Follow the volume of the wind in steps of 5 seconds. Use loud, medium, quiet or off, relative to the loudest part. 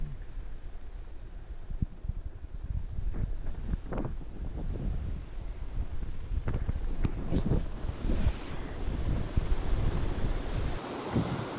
medium, loud, loud.